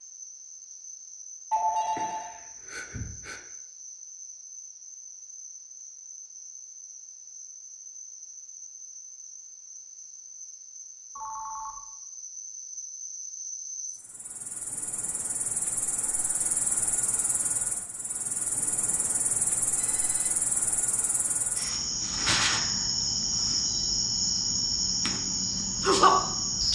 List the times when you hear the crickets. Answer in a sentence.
The crickets can be heard from 0.0 to 26.6 s.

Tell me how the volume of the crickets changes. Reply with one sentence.
The loudness of the crickets goes up.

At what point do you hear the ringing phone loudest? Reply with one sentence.
The loudest moment of the ringing phone is at 2 seconds.